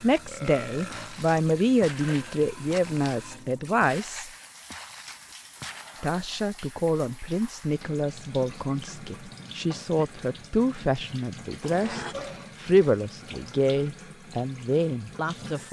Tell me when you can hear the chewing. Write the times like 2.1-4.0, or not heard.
not heard.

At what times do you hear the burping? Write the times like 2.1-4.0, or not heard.
0.2-1.2, 11.6-12.6.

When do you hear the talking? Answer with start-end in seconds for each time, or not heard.
0.0-4.3, 6.0-15.6.